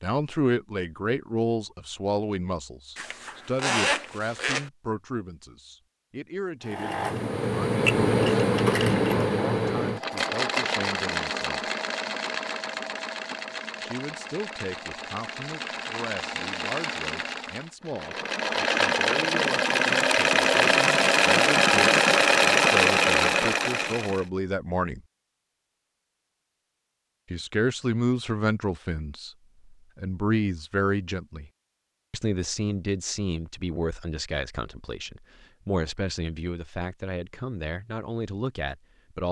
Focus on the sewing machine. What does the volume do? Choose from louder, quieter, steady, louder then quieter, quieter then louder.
quieter then louder.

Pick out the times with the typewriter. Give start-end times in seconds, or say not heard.
not heard.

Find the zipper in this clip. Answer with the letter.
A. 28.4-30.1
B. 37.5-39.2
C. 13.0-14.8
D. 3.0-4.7
D.